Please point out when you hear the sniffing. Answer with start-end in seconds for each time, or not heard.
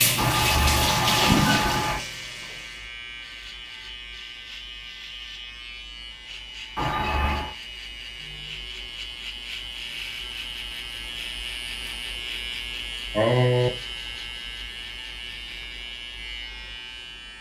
0.1-2.0, 6.8-7.5, 13.1-13.7.